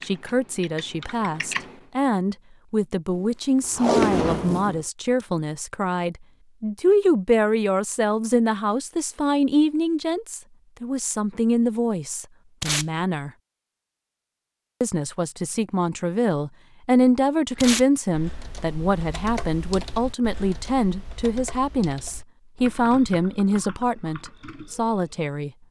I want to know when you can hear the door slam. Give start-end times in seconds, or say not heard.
3.1-4.7.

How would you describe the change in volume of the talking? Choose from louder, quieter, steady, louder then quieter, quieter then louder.
steady.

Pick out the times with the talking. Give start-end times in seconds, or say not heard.
0.1-13.3, 14.8-25.5.